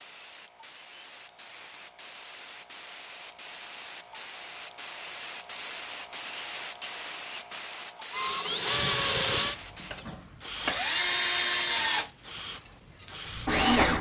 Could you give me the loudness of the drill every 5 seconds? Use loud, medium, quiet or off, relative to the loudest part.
off, loud, loud.